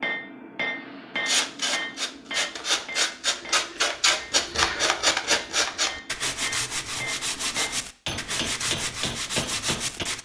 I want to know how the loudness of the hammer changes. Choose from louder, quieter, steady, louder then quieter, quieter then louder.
quieter then louder.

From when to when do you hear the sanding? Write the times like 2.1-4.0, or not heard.
1.1-10.1.